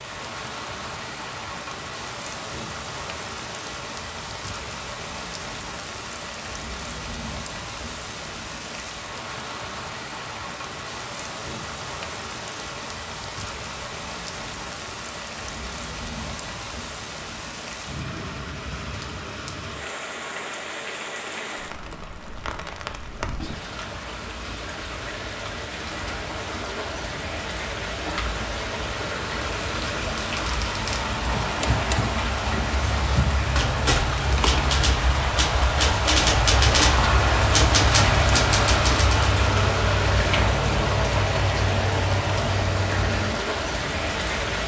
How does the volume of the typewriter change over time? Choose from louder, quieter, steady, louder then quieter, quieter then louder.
louder.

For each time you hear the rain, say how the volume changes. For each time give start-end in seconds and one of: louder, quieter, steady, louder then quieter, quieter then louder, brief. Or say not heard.
0.0-44.6 louder.